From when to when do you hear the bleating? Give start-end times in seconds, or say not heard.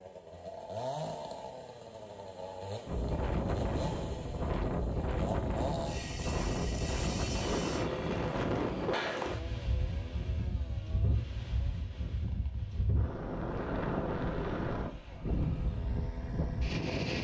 not heard.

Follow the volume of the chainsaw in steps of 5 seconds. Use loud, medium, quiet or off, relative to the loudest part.
loud, loud, quiet, medium.